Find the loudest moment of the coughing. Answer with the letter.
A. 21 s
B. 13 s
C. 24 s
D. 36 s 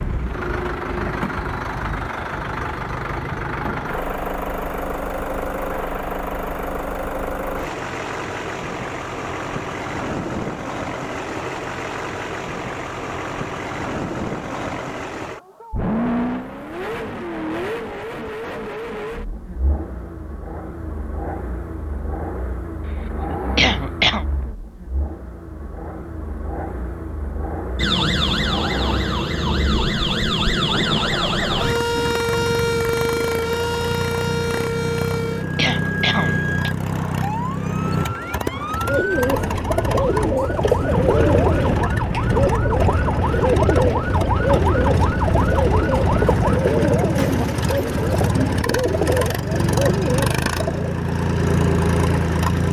C.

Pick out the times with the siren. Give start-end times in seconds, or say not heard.
27.8-46.5.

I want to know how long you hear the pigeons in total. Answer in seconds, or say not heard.
12 s.